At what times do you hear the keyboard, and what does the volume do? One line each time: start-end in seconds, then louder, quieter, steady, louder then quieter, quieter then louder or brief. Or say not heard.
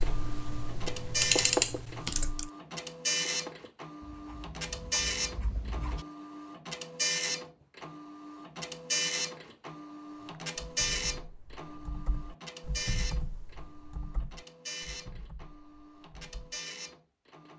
0.0-2.5 brief
10.2-16.6 louder then quieter.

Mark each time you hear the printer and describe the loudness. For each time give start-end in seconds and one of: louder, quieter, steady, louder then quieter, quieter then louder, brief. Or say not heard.
0.0-17.5 quieter.